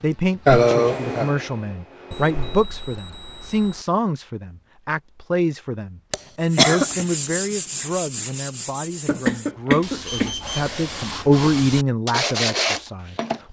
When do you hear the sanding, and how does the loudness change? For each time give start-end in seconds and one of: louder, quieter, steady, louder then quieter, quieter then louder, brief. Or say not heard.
6.4-13.4 quieter then louder.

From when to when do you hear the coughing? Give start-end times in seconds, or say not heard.
0.5-1.3, 6.1-7.0, 9.1-10.8.